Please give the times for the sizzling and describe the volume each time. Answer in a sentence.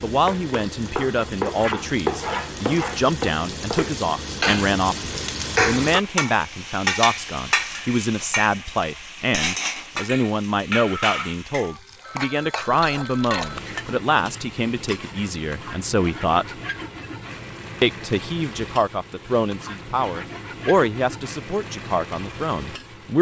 You can hear the sizzling from 0.0 to 23.1 s, getting quieter.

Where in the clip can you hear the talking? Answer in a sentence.
The talking can be heard from 0.0 to 16.6 s and from 17.8 to 23.1 s.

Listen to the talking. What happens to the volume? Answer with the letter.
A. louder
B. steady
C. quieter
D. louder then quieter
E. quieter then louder
B.